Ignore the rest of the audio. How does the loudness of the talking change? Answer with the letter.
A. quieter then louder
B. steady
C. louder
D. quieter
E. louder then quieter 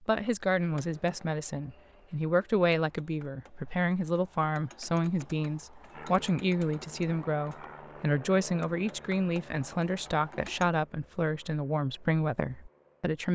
B.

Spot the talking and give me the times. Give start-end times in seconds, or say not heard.
0.1-13.3.